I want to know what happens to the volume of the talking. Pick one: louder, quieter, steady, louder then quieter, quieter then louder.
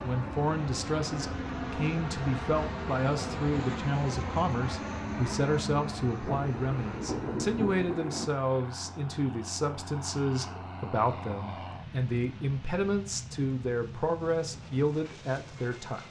steady.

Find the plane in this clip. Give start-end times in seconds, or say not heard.
0.0-16.0.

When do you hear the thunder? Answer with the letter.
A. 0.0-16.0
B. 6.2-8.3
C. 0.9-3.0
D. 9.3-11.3
B.